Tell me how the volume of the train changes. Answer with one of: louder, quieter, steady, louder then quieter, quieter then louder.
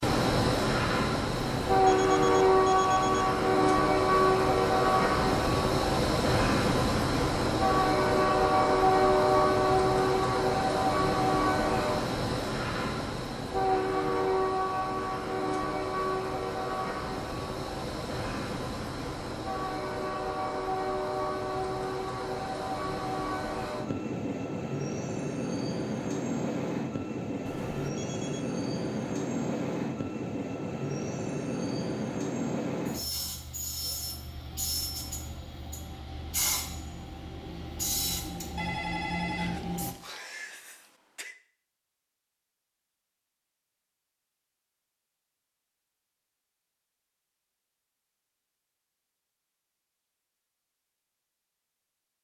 quieter.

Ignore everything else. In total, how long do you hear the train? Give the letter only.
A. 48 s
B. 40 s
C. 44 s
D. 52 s
B.